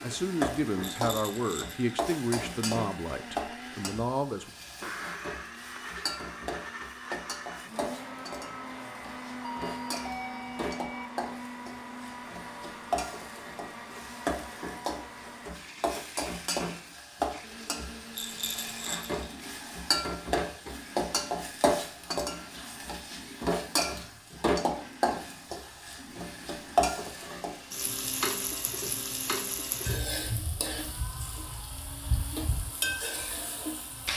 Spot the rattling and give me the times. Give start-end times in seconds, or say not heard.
0.8-1.9, 18.1-19.1.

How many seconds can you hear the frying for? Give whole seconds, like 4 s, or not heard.
34 s.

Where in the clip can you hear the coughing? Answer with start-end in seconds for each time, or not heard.
not heard.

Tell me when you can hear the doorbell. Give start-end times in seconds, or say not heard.
9.4-11.1.